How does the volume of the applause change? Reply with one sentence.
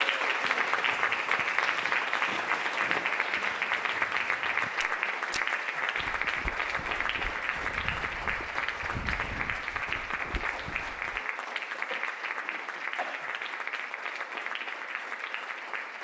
The loudness of the applause goes down.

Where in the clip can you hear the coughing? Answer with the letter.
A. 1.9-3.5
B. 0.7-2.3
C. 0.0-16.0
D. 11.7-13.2
D.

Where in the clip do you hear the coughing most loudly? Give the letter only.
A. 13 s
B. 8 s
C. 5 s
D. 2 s
A.